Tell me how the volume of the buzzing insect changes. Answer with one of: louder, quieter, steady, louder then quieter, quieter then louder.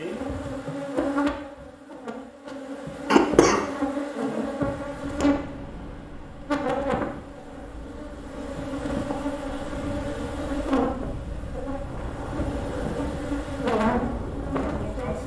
steady.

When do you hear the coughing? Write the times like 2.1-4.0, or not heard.
3.1-3.6.